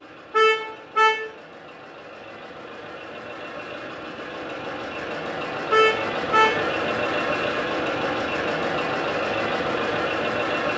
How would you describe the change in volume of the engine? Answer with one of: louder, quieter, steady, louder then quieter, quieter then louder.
louder.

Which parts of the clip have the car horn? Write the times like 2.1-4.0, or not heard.
0.3-1.3, 5.7-6.7.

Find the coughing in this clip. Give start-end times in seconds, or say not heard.
not heard.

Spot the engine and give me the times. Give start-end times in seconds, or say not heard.
0.0-10.7.